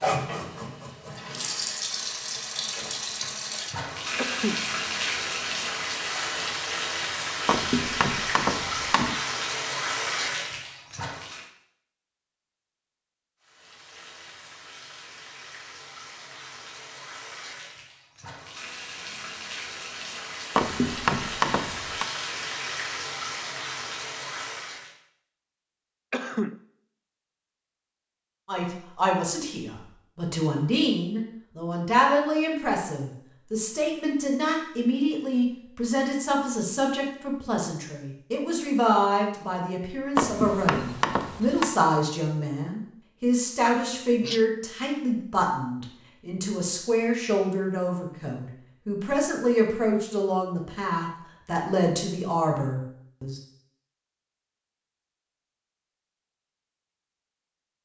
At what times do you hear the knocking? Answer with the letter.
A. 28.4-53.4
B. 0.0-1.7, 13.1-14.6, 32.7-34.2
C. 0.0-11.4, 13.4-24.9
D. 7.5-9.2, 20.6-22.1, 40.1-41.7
D.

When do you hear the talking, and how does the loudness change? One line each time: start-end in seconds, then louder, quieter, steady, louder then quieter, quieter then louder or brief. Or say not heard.
28.4-53.4 steady.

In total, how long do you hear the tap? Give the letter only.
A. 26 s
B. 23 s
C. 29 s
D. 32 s
B.